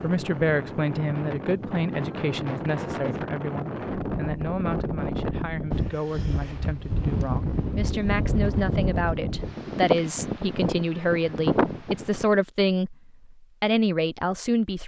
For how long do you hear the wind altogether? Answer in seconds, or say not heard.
12 s.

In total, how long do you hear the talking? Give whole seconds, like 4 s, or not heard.
15 s.